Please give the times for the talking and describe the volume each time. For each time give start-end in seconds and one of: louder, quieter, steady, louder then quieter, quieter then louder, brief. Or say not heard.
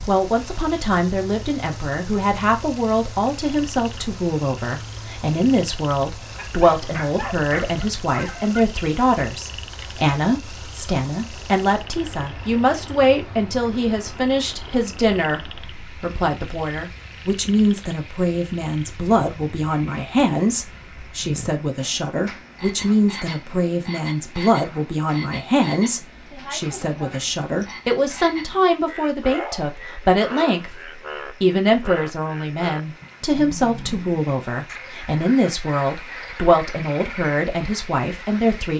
0.1-38.7 steady.